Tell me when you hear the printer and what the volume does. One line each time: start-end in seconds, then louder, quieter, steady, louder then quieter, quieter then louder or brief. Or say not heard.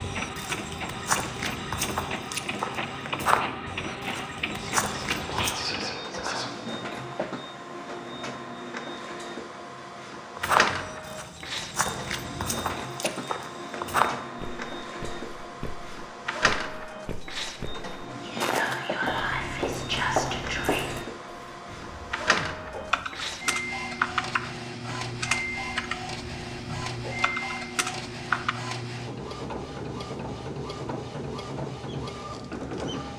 0.0-33.1 steady.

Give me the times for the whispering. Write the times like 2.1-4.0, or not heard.
4.5-6.5, 18.2-20.9.